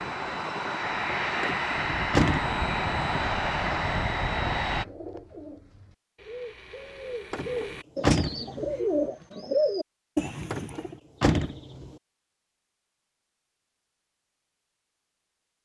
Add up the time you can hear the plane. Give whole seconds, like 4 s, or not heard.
5 s.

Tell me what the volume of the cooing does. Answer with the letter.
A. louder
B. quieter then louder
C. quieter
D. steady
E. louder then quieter
A.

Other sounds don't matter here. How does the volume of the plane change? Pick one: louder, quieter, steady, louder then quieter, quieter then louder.
steady.